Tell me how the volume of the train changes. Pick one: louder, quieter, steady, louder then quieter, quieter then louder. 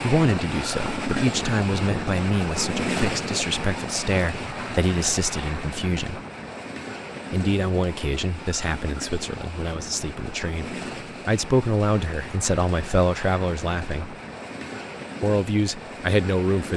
quieter.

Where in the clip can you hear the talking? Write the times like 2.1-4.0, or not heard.
0.0-6.2, 7.3-14.2, 15.2-16.7.